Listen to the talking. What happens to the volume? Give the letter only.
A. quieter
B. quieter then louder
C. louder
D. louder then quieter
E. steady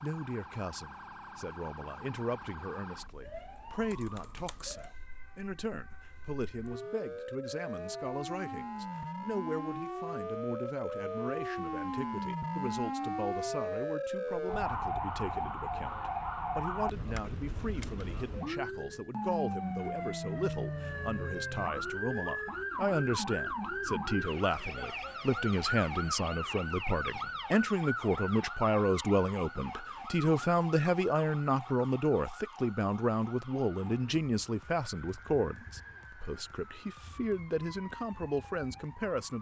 C.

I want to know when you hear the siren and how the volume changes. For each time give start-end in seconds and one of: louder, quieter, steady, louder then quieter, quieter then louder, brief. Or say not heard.
0.0-39.3 louder then quieter.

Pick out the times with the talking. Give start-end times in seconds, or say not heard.
0.0-39.3.